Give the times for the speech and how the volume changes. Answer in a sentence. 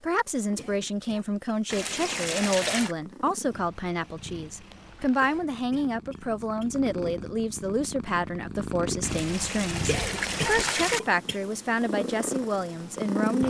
The speech can be heard from 0.0 to 13.4 s, at a steady volume.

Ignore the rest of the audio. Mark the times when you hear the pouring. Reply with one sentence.
You can hear the pouring from 1.7 to 3.0 s and from 9.0 to 11.0 s.